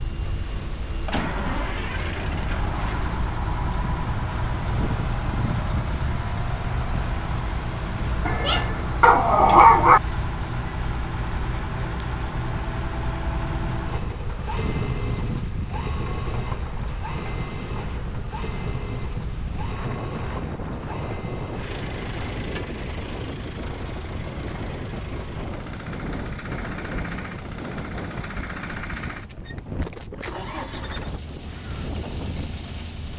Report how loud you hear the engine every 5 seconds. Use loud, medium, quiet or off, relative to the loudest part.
loud, loud, loud, loud, medium, medium, medium.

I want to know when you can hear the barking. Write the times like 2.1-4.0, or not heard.
8.2-10.0.